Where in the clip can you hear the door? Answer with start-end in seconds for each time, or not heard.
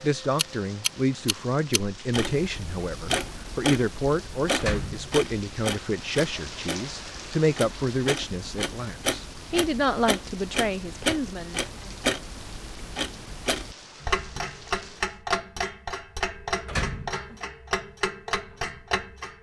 4.5-5.2, 16.6-17.4.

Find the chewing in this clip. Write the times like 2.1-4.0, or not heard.
not heard.